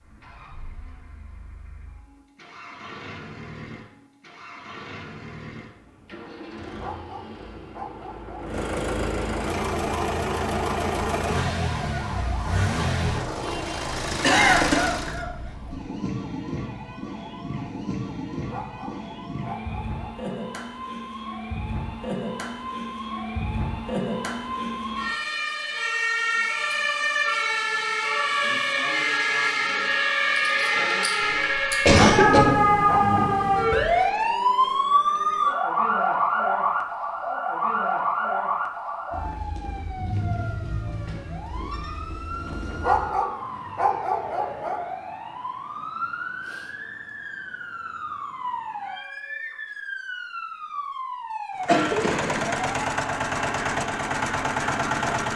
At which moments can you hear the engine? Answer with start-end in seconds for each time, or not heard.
0.0-15.2, 51.5-55.3.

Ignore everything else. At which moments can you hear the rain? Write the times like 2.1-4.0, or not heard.
not heard.